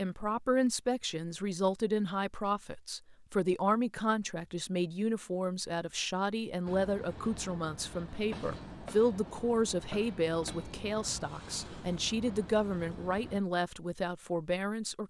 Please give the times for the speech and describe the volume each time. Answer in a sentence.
The speech can be heard from 0.0 to 15.0 s, at a steady volume.